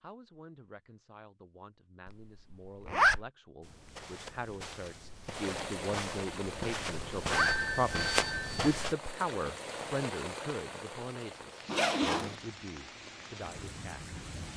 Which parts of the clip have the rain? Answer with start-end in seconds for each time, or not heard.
5.2-14.5.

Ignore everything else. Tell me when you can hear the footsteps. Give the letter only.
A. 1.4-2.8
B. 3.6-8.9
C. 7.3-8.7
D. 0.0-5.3
B.